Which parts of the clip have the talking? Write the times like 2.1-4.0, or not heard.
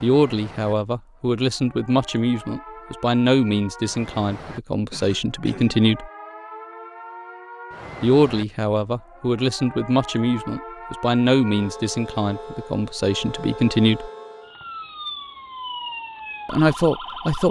0.0-6.1, 8.0-14.1, 16.4-17.4.